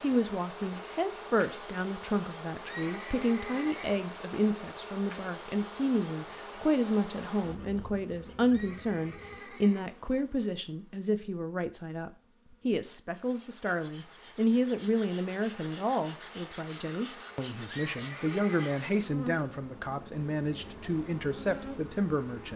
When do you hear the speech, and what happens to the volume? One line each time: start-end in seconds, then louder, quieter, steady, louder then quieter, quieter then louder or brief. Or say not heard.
0.0-22.5 steady.